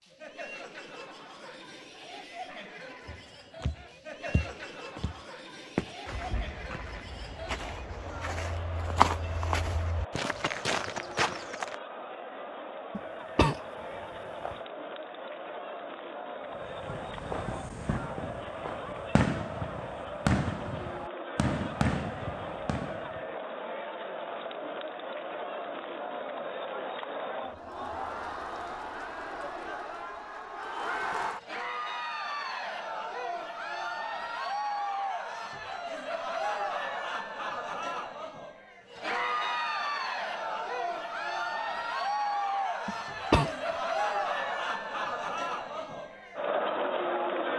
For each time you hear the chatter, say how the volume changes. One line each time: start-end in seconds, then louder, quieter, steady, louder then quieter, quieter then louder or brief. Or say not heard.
0.0-47.5 louder.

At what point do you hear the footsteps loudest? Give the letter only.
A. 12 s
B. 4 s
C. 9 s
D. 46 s
C.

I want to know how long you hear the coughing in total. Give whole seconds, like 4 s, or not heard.
2 s.